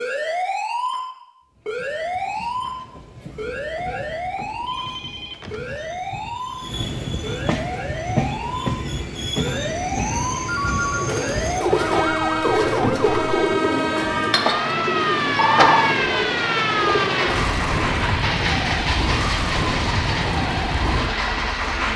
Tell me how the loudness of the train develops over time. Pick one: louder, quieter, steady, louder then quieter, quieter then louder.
louder.